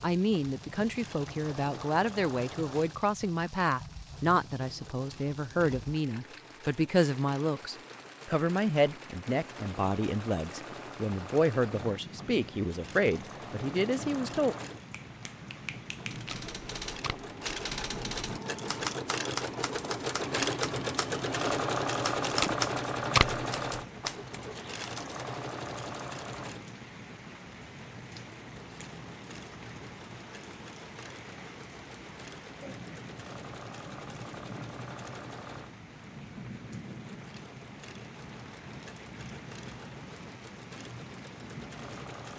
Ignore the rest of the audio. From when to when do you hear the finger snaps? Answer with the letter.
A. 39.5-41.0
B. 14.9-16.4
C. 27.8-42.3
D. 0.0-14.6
B.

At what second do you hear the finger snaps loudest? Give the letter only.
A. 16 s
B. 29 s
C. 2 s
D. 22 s
A.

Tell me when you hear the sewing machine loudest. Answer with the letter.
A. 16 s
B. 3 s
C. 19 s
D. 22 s
D.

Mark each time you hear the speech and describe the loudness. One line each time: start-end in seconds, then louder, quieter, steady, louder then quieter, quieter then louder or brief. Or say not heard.
0.0-14.6 steady.